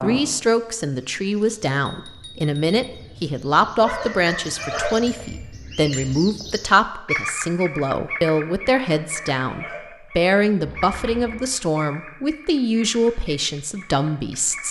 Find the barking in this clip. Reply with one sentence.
You can hear the barking from 3.8 to 5.0 s and from 8.8 to 9.9 s.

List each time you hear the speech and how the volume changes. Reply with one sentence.
The speech can be heard from 0.0 to 14.6 s, at a steady volume.